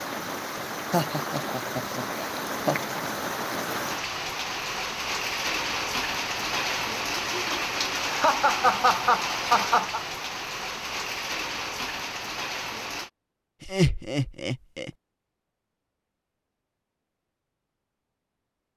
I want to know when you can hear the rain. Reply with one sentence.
You can hear the rain from 0.0 to 13.1 s.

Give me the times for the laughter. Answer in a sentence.
The laughter can be heard from 0.9 to 2.8 s, from 8.1 to 10.0 s and from 13.6 to 14.9 s.